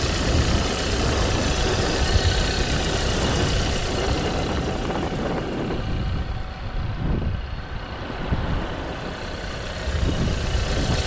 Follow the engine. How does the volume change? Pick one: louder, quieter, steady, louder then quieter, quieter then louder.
quieter then louder.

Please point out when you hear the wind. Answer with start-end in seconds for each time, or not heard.
0.0-11.0.